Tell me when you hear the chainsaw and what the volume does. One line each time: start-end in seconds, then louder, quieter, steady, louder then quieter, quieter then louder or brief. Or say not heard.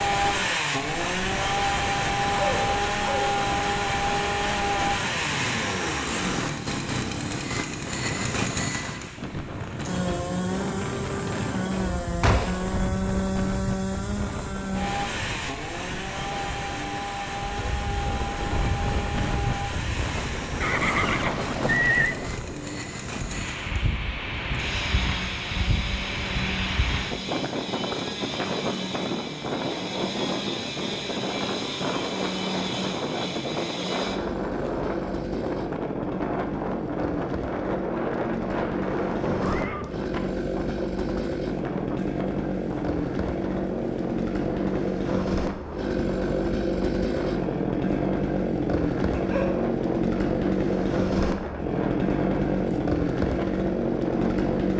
0.0-54.7 quieter then louder.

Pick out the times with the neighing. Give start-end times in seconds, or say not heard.
12.2-12.8, 20.6-22.1, 39.2-40.0.